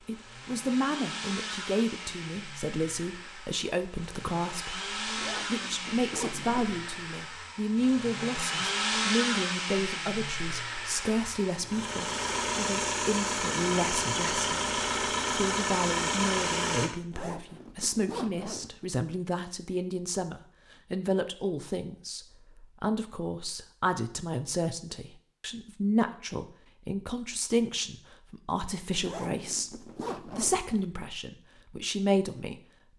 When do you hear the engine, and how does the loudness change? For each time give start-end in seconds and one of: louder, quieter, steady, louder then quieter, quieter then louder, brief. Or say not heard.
0.0-16.9 louder.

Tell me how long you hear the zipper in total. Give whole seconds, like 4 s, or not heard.
5 s.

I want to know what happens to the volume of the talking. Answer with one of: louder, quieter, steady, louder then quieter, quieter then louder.
steady.